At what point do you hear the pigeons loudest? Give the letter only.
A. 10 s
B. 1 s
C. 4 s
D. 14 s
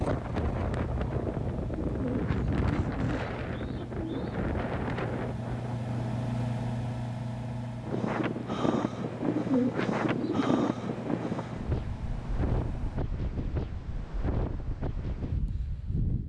A.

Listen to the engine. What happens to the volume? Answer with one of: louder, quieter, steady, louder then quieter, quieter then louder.
louder then quieter.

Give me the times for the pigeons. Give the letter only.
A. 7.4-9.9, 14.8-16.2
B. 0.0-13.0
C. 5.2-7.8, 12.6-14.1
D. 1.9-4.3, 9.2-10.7
D.